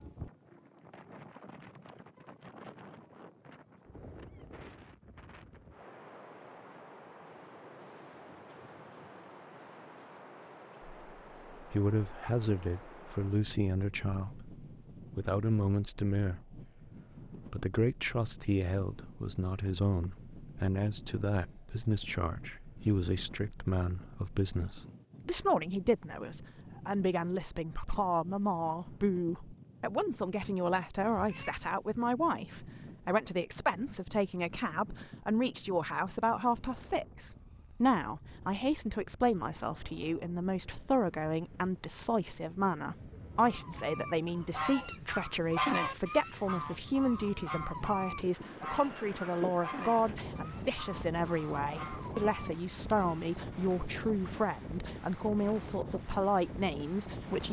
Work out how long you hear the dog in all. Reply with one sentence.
The dog can't be heard in this clip.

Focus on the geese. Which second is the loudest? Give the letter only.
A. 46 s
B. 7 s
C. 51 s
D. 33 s
A.